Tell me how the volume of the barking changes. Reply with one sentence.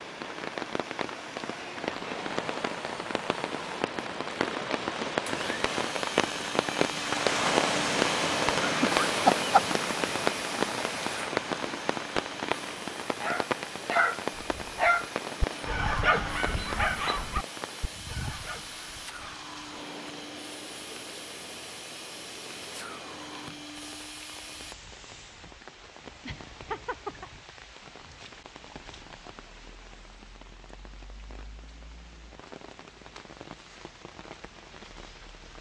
The loudness of the barking goes down.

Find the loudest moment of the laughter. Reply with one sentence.
The loudest moment of the laughter is at 9 seconds.